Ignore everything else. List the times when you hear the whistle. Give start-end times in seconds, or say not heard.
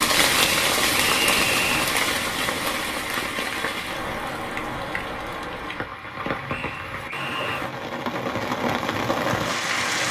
0.3-1.9, 6.5-7.6.